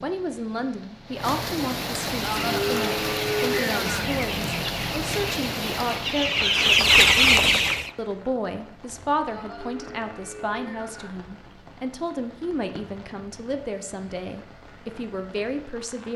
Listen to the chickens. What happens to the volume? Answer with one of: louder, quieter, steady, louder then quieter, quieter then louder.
louder.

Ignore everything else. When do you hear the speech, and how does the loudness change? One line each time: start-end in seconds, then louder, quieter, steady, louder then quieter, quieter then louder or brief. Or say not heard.
0.0-16.1 steady.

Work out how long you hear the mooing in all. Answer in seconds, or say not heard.
4 s.